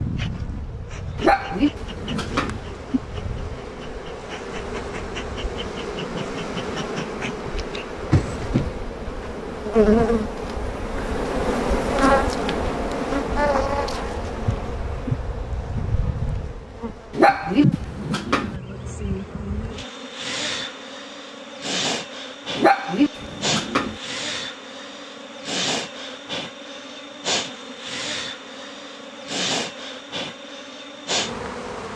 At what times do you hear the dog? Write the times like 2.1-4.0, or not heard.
1.1-2.6, 17.1-18.6, 22.6-23.9.